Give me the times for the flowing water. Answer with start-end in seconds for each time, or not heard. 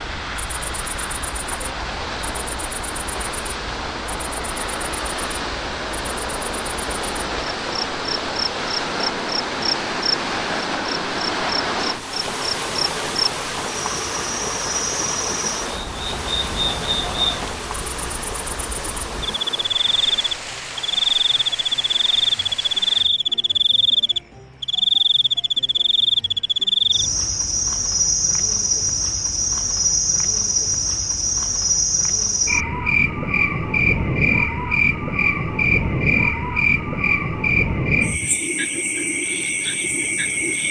0.0-23.1.